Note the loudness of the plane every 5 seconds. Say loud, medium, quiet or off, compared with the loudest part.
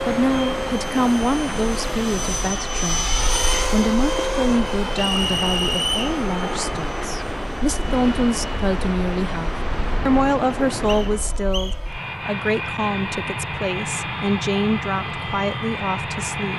loud, medium, loud, loud.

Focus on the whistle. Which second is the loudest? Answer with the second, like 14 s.
6 s.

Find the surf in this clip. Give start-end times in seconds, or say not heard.
0.0-11.4.